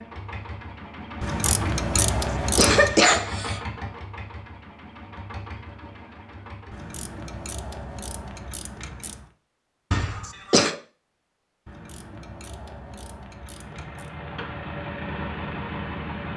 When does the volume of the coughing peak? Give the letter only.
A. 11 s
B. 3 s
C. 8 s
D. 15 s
B.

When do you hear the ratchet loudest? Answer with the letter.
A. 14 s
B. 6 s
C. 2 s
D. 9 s
C.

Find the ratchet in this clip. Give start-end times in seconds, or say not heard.
1.2-3.0, 6.7-9.2, 11.7-14.1.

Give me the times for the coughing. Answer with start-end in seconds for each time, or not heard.
1.9-3.6, 9.9-10.8.